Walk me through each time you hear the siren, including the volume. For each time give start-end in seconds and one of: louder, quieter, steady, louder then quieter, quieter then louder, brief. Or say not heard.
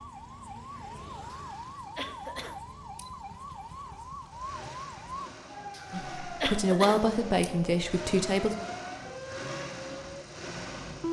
0.0-11.0 steady.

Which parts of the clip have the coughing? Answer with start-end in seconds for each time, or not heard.
1.3-3.1, 5.7-7.5.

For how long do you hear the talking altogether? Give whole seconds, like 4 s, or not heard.
3 s.